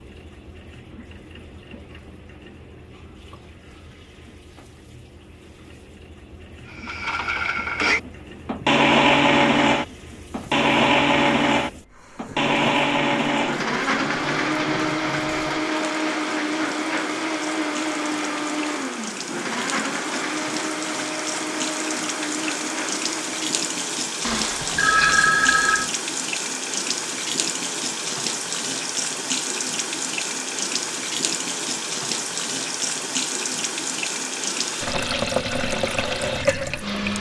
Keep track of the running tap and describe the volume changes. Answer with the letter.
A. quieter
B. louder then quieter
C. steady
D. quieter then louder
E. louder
E.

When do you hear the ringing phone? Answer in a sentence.
The ringing phone can be heard from 24.2 to 25.9 s.